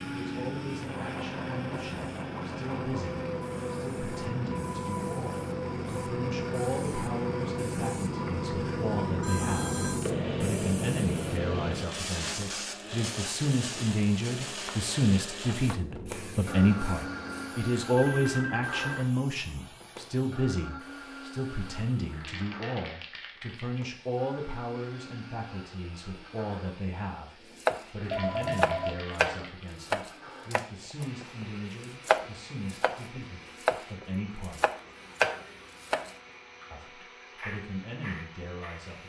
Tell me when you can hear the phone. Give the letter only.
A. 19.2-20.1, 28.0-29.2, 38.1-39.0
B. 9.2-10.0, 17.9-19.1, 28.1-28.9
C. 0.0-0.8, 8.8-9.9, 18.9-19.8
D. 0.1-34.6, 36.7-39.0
B.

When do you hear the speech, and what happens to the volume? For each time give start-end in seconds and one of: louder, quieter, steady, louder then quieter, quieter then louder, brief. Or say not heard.
0.1-34.6 louder then quieter
36.7-39.0 brief.